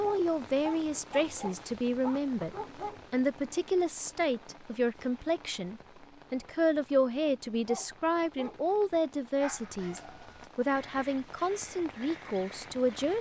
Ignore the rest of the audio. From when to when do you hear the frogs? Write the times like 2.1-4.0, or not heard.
not heard.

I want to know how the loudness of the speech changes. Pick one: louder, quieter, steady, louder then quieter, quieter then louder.
steady.